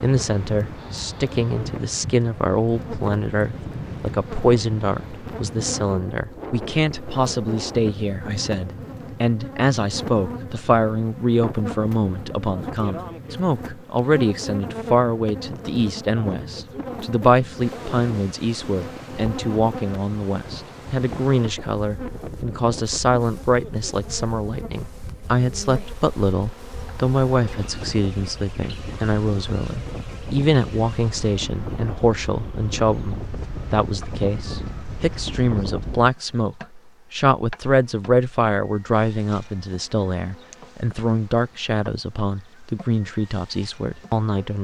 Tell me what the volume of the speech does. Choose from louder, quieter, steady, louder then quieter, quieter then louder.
steady.